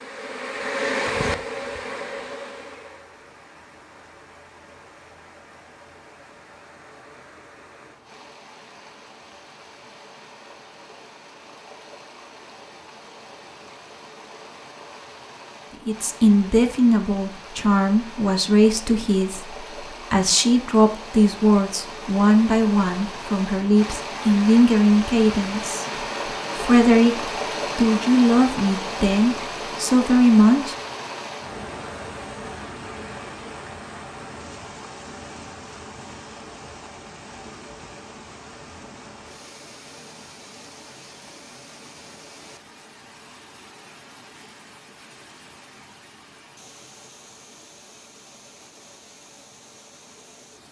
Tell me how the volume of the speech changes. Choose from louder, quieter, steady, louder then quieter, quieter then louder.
steady.